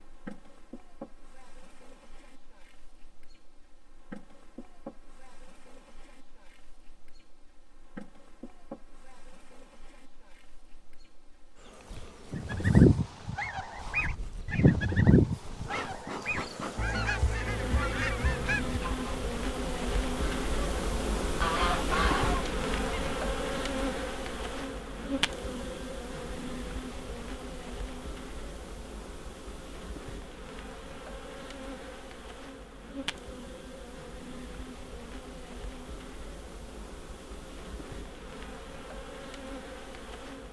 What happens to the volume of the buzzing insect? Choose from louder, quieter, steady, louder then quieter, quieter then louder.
louder then quieter.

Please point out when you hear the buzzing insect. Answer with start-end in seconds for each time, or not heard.
0.0-40.4.